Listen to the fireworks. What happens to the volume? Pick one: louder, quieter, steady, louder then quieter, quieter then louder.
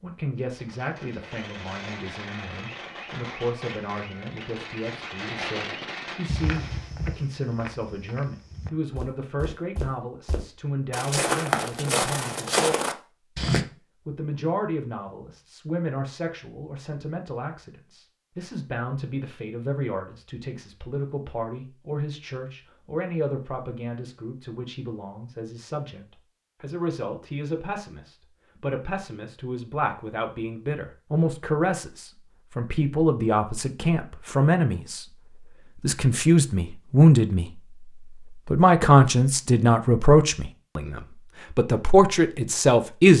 louder.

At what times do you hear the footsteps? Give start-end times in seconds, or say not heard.
6.2-13.7.